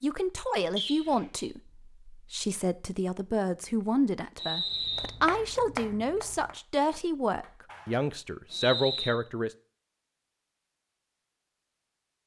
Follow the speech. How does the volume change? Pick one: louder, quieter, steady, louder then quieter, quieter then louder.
steady.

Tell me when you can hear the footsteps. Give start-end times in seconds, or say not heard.
not heard.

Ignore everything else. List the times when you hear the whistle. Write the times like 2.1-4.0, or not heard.
0.8-1.4, 4.3-5.1, 8.5-9.2.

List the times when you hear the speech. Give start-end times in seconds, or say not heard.
0.0-9.5.